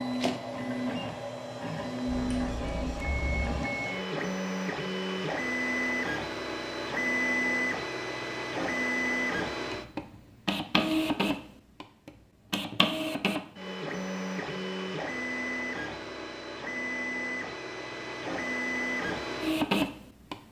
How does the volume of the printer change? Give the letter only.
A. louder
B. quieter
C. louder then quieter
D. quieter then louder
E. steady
E.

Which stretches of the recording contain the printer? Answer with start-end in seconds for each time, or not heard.
0.0-20.4.